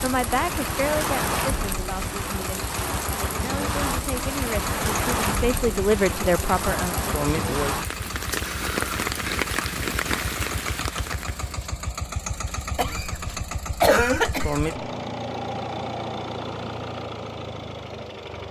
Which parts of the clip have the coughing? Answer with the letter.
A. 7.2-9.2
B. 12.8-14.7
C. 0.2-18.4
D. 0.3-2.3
B.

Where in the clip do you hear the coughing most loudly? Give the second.
14 s.